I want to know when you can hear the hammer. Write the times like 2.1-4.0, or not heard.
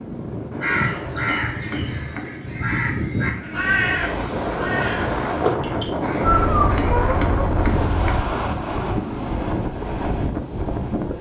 0.5-2.4, 6.0-8.2.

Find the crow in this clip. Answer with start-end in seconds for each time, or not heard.
0.6-7.0.